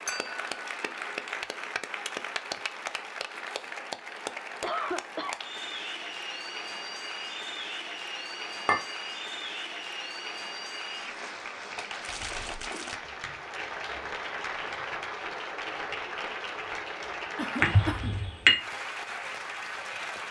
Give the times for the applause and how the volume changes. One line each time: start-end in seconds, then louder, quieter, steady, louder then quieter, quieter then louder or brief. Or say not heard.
0.0-20.2 steady.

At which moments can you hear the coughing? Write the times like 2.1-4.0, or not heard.
4.6-5.3, 17.4-18.1.